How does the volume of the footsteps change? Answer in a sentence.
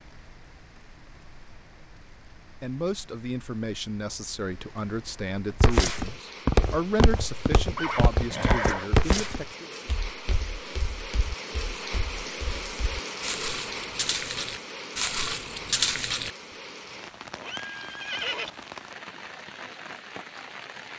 The loudness of the footsteps goes down, then up.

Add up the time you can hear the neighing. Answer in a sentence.
The neighing can be heard for 2 seconds in total.